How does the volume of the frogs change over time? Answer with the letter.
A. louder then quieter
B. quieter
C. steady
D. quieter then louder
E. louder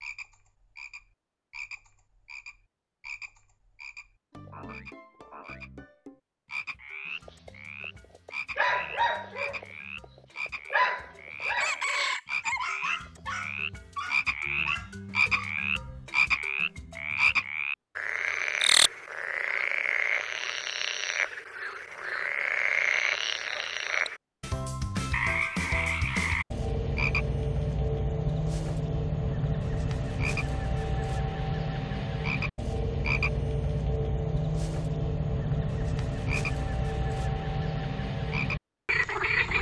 E.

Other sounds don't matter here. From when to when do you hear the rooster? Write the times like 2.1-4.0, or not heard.
11.6-13.1.